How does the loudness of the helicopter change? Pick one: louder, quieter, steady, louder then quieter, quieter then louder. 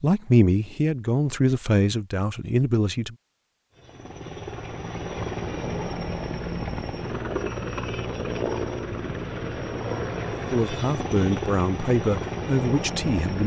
steady.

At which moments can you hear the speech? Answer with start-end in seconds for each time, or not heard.
0.0-3.1, 10.5-13.4.